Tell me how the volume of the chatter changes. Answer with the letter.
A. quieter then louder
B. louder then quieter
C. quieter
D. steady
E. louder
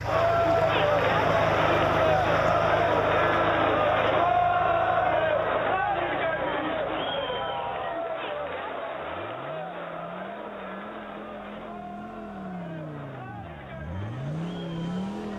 C.